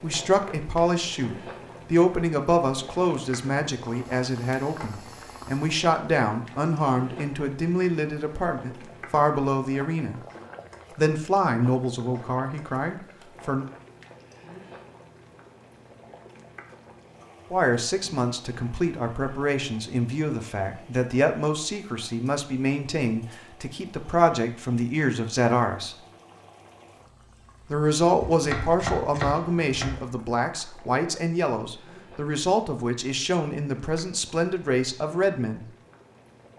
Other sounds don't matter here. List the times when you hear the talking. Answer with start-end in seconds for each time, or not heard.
0.0-10.2, 10.9-13.7, 17.5-25.9, 27.7-35.6.